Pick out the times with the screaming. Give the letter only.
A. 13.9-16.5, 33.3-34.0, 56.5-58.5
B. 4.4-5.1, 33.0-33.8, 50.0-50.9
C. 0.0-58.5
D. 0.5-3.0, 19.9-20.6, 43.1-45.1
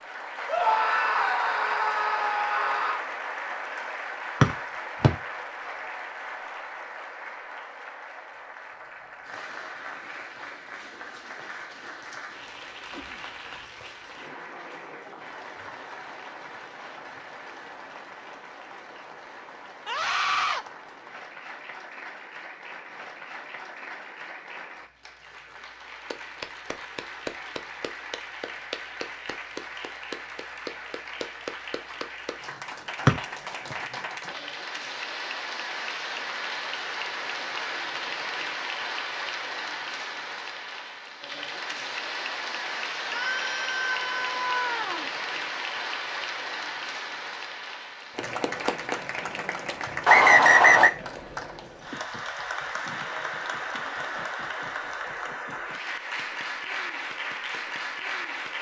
D.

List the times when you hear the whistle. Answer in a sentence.
The whistle can be heard from 4.4 to 5.1 s, from 33.0 to 33.8 s and from 50.0 to 50.9 s.